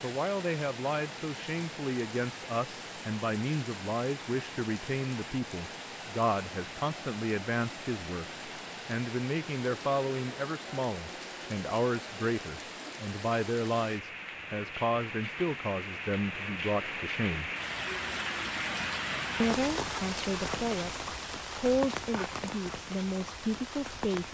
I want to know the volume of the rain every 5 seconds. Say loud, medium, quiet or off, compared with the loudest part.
medium, medium, medium, loud, loud.